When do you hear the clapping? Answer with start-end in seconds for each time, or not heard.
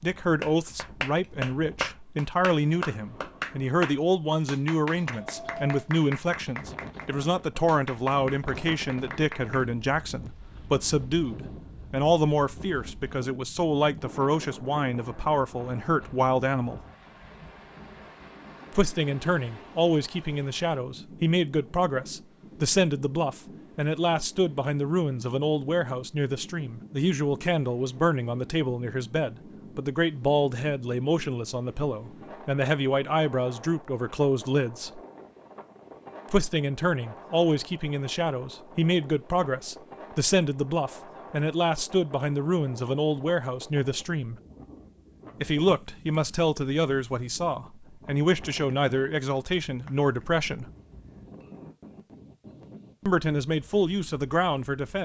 0.4-9.7.